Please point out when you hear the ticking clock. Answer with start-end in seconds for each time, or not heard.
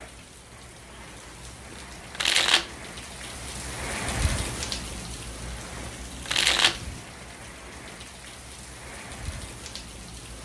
not heard.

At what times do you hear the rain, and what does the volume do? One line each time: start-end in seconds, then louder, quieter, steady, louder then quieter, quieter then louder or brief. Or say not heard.
0.0-10.3 louder then quieter.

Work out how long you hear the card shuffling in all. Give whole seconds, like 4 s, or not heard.
2 s.